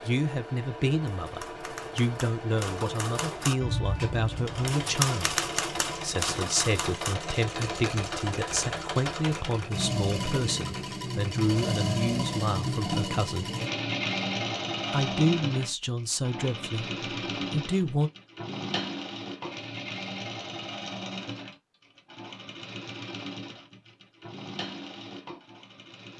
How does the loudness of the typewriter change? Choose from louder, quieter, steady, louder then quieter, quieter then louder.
louder then quieter.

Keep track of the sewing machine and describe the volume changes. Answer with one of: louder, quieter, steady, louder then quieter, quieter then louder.
louder then quieter.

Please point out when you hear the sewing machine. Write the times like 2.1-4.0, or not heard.
0.0-26.1.